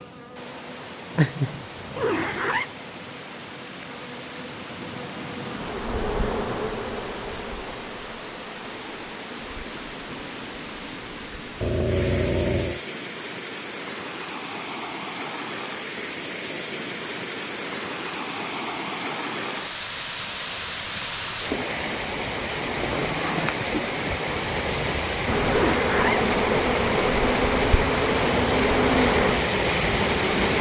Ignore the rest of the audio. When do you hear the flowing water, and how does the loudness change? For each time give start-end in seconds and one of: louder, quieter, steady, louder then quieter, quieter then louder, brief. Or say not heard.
0.1-30.5 louder.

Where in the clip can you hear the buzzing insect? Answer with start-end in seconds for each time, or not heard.
0.0-11.7, 25.2-30.5.